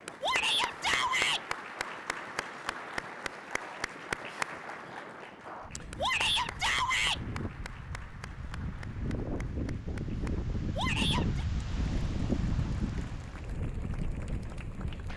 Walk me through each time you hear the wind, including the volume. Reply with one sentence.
You can hear the wind from 0.0 to 15.1 s, getting louder.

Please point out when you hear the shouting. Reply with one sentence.
The shouting can be heard from 0.2 to 1.4 s, from 6.0 to 7.2 s and from 10.8 to 11.4 s.